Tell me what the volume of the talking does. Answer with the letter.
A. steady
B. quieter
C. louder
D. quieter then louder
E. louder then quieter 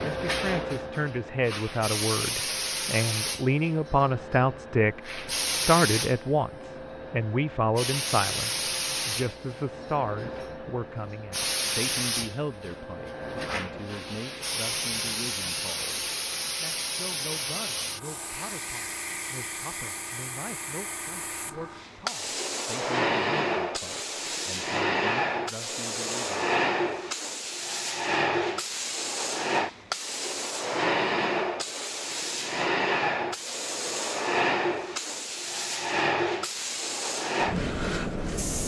B.